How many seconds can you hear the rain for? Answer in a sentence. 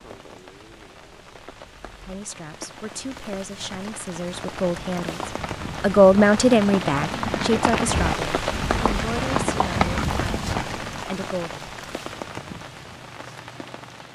The rain can be heard for 14 seconds in total.